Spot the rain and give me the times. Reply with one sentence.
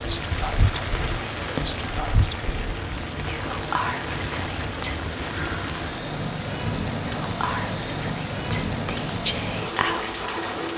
You can hear the rain from 0.0 to 10.7 s.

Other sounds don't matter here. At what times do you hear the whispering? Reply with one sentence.
The whispering can be heard from 0.0 to 5.0 s and from 7.0 to 10.6 s.